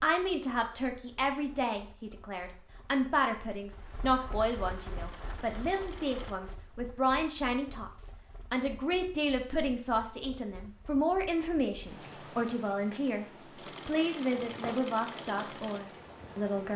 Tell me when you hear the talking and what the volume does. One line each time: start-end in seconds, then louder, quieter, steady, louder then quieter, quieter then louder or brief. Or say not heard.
0.0-13.2 steady
13.8-16.7 brief.